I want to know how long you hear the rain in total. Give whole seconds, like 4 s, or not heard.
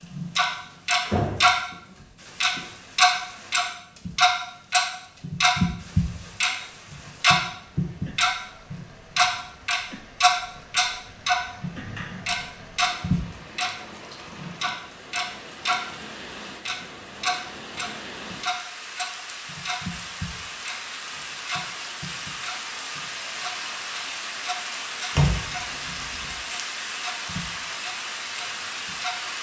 29 s.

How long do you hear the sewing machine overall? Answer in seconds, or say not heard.
not heard.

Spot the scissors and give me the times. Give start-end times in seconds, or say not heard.
not heard.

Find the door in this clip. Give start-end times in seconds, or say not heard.
1.1-1.9, 11.5-12.9, 25.1-26.4.